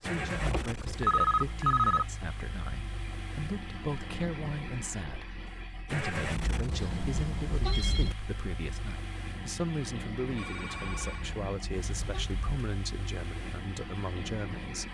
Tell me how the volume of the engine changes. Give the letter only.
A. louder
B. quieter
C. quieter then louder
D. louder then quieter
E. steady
E.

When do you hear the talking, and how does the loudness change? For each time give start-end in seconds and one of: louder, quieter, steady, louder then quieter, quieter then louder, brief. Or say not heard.
0.0-14.8 steady.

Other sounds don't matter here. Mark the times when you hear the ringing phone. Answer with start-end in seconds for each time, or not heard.
0.5-2.0, 6.8-8.2, 10.3-11.2.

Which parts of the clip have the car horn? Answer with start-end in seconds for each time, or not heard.
0.1-0.5, 6.2-8.2, 10.6-12.7.